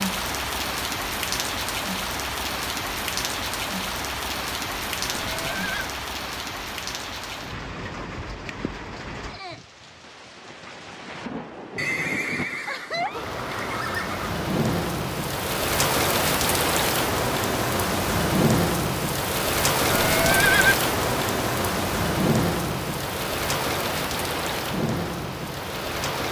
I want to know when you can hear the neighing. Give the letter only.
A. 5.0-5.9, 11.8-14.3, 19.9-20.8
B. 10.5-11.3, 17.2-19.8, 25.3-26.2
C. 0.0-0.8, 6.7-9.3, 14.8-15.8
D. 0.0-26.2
A.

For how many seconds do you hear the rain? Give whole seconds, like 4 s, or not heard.
26 s.